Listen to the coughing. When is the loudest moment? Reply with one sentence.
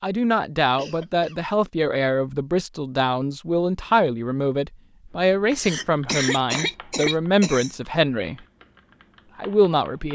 The loudest moment of the coughing is at 6 seconds.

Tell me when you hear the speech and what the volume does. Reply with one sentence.
You can hear the speech from 0.0 to 8.3 s, at a steady volume; and briefly from 9.3 to 10.1 s.